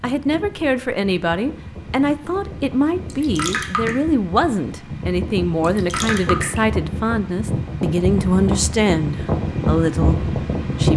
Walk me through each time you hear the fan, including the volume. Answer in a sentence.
You can hear the fan from 0.0 to 10.9 s, getting louder.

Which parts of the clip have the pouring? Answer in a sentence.
You can hear the pouring from 3.1 to 4.0 s and from 5.6 to 6.6 s.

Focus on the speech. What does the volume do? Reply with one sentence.
The volume of the speech stays about the same.